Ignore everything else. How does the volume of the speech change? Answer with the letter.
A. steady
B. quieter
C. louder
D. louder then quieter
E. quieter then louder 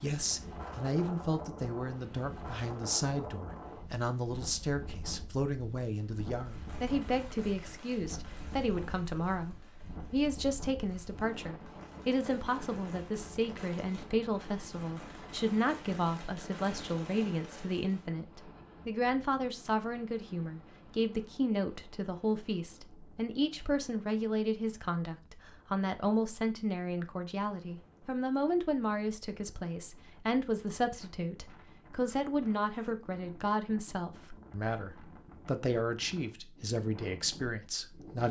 A.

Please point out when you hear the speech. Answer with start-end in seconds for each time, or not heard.
0.0-38.2.